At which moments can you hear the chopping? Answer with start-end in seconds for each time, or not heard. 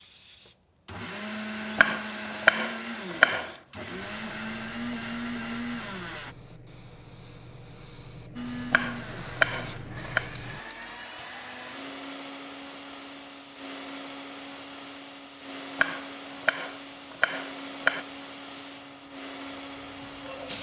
1.8-3.5, 8.7-10.2, 15.8-18.1.